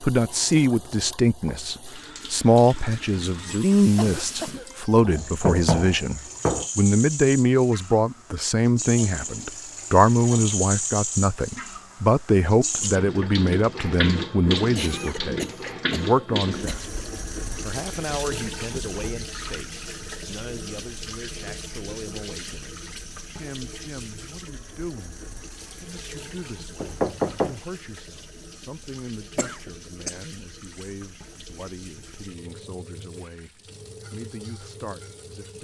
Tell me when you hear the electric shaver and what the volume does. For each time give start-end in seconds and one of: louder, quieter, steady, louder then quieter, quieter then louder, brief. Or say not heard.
not heard.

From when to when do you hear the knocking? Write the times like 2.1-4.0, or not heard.
5.0-6.7, 26.8-27.6.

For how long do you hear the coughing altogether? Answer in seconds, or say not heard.
4 s.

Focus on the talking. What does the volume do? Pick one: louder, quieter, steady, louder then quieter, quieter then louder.
quieter.